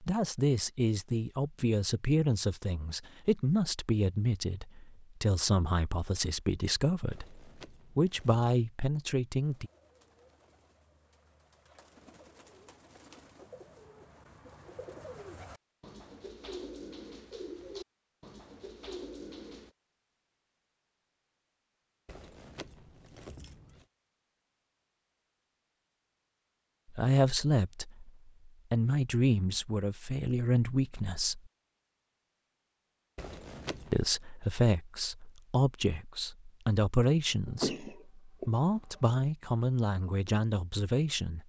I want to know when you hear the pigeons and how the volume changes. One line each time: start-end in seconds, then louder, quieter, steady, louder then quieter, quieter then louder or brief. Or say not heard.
9.4-19.7 louder.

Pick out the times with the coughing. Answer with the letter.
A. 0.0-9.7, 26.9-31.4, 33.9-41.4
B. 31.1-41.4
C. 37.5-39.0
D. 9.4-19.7
C.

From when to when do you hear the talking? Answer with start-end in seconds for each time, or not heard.
0.0-9.7, 26.9-31.4, 33.9-41.4.